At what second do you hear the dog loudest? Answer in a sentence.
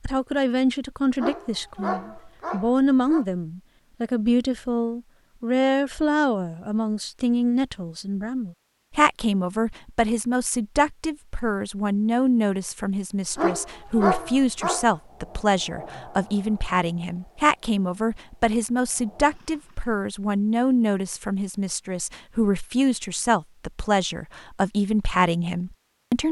The loudest moment of the dog is at 14 seconds.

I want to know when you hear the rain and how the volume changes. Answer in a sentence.
You can't hear the rain here.